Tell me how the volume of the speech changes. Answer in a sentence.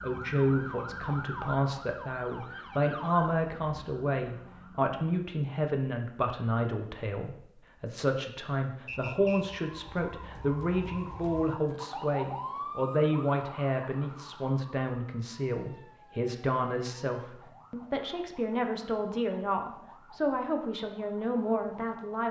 The volume of the speech stays about the same.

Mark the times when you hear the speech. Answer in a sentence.
The speech can be heard from 0.0 to 22.2 s.